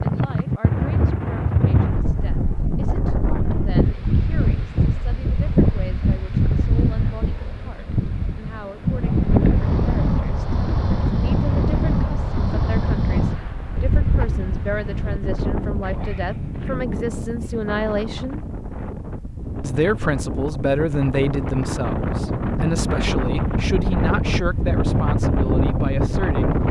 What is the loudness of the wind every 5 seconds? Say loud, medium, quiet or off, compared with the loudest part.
loud, loud, loud, medium, loud, loud.